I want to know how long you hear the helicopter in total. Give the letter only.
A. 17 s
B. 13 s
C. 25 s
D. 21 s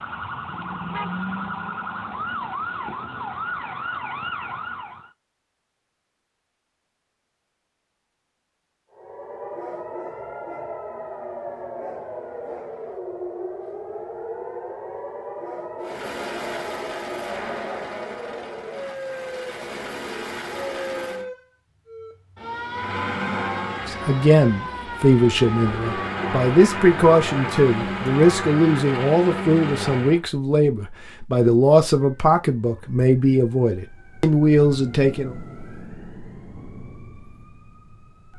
B.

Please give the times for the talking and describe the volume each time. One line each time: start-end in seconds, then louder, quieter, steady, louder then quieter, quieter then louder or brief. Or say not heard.
23.9-35.4 steady.